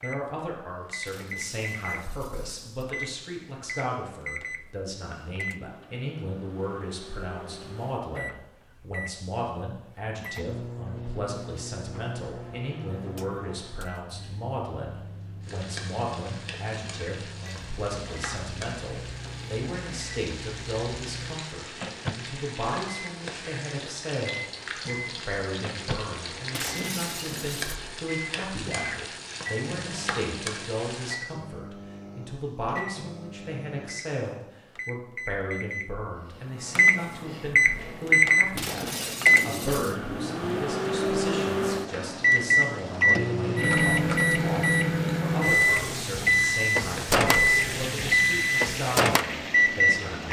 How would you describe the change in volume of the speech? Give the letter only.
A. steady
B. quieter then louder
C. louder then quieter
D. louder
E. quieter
A.